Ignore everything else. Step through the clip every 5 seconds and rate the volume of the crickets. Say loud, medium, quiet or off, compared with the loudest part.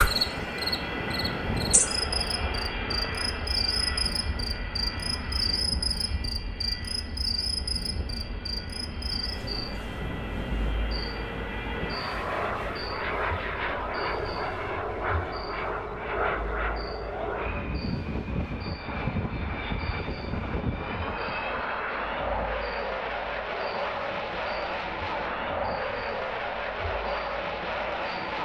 loud, loud, medium, quiet, quiet, quiet.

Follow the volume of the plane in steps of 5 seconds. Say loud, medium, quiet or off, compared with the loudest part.
loud, medium, loud, loud, loud, loud.